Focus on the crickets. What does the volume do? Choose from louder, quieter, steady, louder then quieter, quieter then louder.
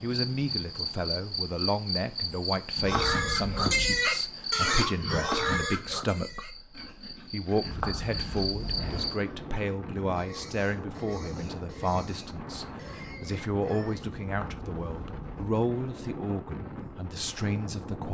quieter then louder.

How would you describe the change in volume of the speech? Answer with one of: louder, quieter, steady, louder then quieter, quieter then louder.
steady.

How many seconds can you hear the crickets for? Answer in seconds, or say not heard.
9 s.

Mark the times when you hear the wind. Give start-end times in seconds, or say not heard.
8.6-18.0.